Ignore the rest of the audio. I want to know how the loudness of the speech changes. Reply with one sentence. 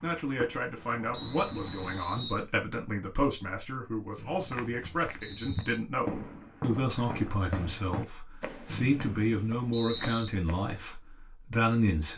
The loudness of the speech stays about the same.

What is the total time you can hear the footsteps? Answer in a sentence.
The footsteps can be heard for 6 seconds in total.